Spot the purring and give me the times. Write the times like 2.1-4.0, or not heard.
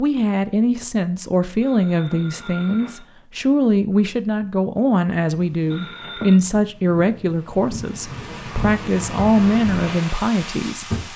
not heard.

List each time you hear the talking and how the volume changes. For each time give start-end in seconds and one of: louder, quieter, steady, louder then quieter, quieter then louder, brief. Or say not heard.
0.0-10.9 steady.